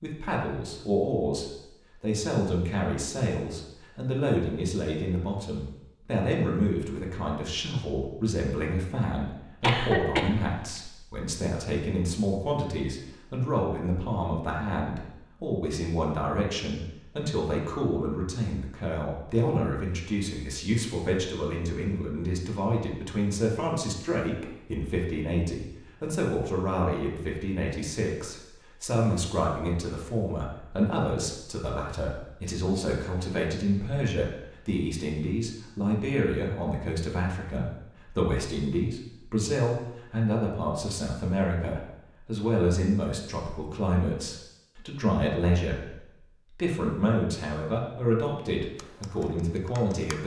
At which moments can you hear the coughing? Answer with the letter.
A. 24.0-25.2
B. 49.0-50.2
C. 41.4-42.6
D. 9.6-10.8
D.